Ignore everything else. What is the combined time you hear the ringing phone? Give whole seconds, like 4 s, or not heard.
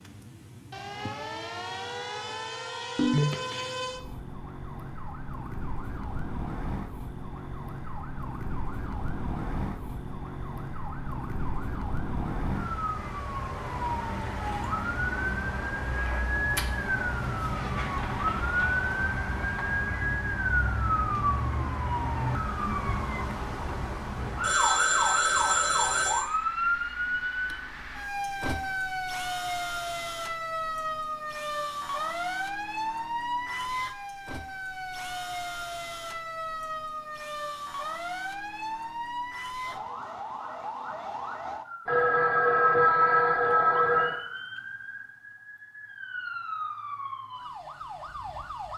5 s.